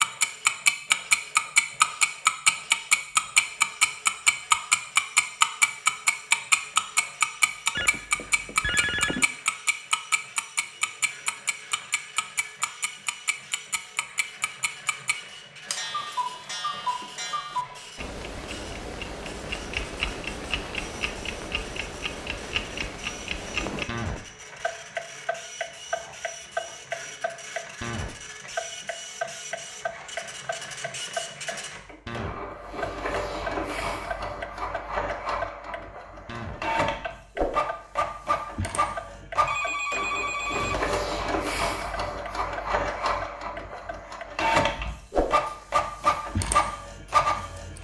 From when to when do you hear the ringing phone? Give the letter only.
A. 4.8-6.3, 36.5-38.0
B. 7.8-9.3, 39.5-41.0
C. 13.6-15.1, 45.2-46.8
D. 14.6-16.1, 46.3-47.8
B.